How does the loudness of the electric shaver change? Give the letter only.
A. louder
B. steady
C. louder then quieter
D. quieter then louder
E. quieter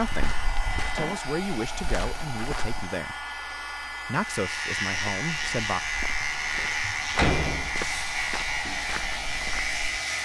B.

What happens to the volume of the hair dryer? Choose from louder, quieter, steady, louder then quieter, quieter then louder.
steady.